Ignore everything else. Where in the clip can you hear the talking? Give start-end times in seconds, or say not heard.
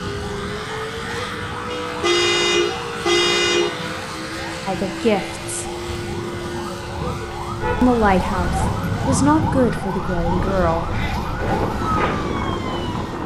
4.7-5.7, 7.8-10.8.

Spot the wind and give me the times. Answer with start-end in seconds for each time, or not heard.
0.0-13.2.